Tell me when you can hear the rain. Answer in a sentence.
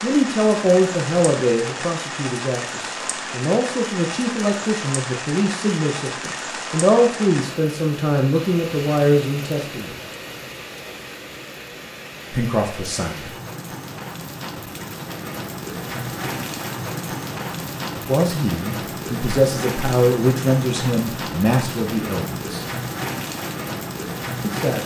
The rain can be heard from 0.0 to 24.8 s.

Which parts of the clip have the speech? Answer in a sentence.
The speech can be heard from 0.0 to 9.9 s, from 12.3 to 13.3 s, from 18.1 to 22.6 s and from 24.4 to 24.8 s.